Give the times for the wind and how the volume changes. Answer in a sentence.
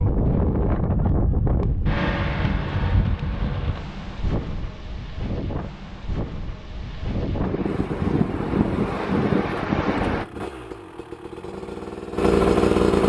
You can hear the wind from 0.0 to 10.2 s, getting quieter then louder.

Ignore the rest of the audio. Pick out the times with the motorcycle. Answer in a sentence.
You can hear the motorcycle from 7.6 to 13.0 s.